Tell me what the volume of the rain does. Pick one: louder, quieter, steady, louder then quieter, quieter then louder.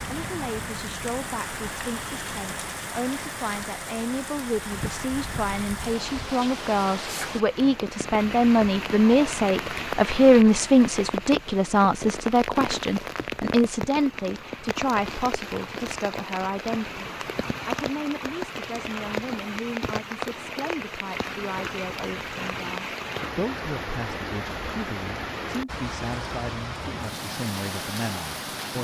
steady.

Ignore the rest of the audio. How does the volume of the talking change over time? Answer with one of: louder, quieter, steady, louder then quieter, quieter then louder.
louder then quieter.